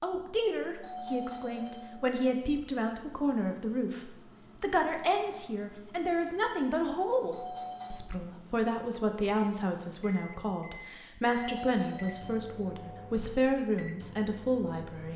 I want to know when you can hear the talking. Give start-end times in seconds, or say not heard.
0.0-15.1.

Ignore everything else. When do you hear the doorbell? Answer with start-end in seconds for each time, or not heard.
0.8-2.4, 7.3-8.0, 11.3-13.1.